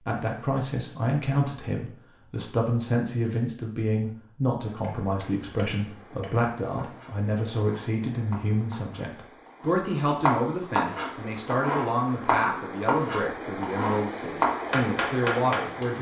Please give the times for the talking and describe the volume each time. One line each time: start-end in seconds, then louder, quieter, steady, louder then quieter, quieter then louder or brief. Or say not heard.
0.1-15.9 steady.